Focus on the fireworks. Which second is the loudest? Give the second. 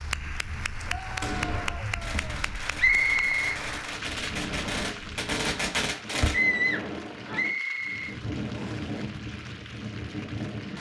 6 s.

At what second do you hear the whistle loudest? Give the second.
3 s.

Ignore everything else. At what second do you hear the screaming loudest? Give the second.
7 s.